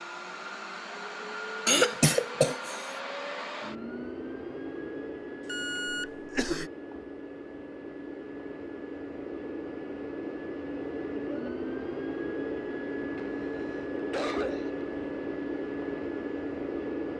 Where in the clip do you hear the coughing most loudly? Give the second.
2 s.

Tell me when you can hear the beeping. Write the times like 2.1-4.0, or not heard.
5.5-6.1.